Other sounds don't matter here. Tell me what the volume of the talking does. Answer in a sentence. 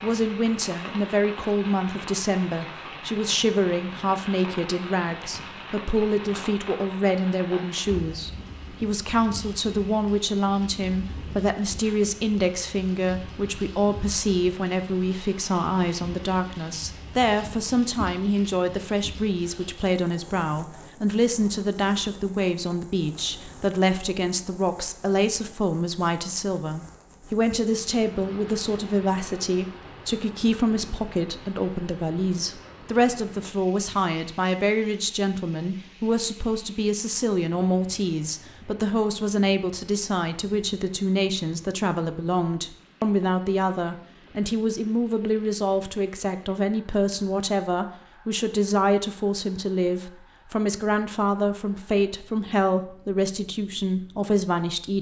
The loudness of the talking stays about the same.